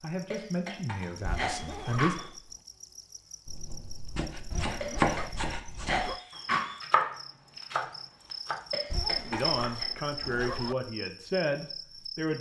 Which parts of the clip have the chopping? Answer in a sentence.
You can hear the chopping from 3.5 to 6.0 s, from 6.8 to 8.7 s and from 9.5 to 10.5 s.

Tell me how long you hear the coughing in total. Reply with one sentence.
The coughing can be heard for 5 seconds in total.